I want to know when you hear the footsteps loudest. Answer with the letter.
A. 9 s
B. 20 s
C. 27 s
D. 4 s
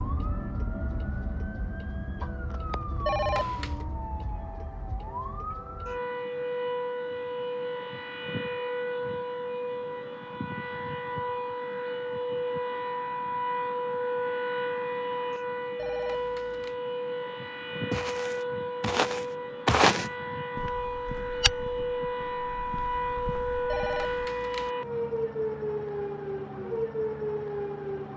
B.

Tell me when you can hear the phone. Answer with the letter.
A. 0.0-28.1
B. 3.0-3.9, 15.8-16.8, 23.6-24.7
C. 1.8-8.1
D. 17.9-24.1
B.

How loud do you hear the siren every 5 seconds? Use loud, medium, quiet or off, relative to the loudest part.
medium, loud, loud, loud, loud, loud.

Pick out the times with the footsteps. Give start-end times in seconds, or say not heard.
17.9-24.1.